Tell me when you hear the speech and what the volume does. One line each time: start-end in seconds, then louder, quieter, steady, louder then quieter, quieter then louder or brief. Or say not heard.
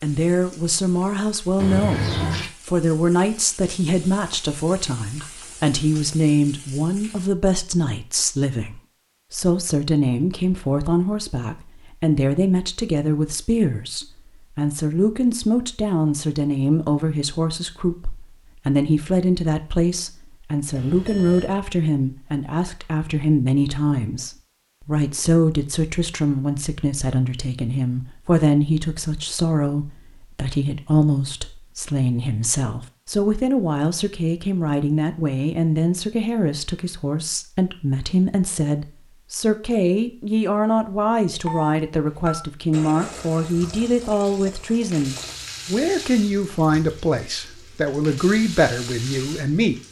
0.0-49.8 steady.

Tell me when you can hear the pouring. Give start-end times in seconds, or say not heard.
1.6-2.5, 42.7-45.4.